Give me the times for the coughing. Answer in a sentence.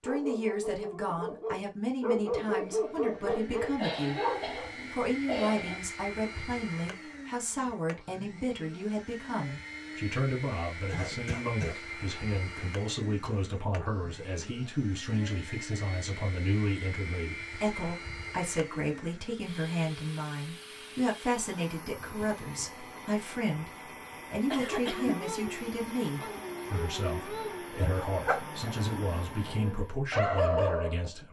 You can hear the coughing from 3.8 to 5.8 s, from 10.8 to 11.8 s and from 24.5 to 25.3 s.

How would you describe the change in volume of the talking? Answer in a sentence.
The volume of the talking stays about the same.